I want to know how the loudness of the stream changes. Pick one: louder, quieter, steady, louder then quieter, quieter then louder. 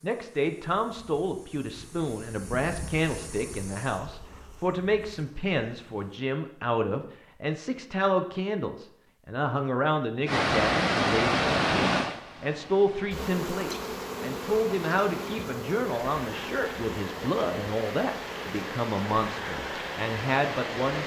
quieter then louder.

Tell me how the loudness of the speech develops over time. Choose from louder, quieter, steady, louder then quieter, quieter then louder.
steady.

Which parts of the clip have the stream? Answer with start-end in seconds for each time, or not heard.
10.2-21.0.